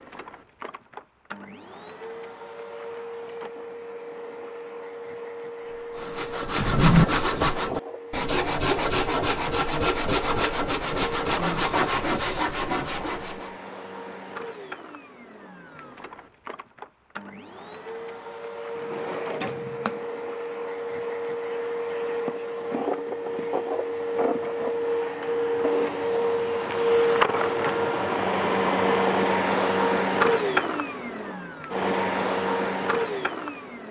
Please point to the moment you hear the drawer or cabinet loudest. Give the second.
7 s.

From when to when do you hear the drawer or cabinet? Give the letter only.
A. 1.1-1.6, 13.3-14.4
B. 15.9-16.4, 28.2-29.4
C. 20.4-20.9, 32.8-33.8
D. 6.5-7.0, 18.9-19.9
D.